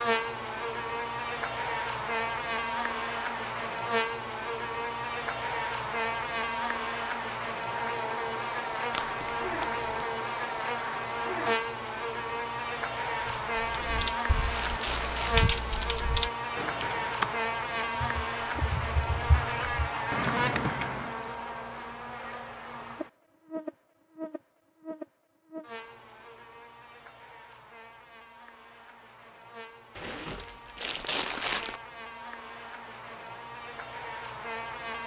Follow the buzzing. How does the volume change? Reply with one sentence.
The volume of the buzzing goes down.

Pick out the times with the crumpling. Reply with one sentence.
You can hear the crumpling from 8.9 to 10.0 s, from 13.7 to 15.3 s and from 29.9 to 31.8 s.